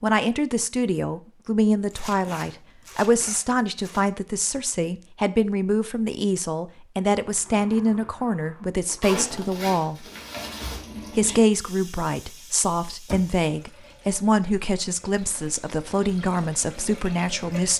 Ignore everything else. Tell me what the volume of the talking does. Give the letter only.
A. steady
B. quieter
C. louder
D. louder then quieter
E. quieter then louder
A.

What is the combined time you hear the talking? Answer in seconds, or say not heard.
17 s.